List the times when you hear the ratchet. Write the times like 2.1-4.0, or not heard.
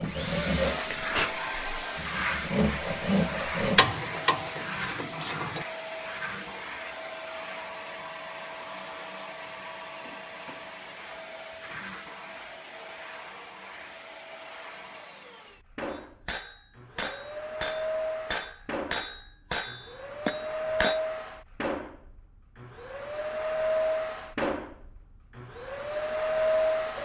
3.8-5.7.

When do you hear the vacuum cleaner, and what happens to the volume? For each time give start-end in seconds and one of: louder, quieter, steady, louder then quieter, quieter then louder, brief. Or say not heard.
0.0-27.0 quieter then louder.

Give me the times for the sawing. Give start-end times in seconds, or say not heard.
0.0-4.0.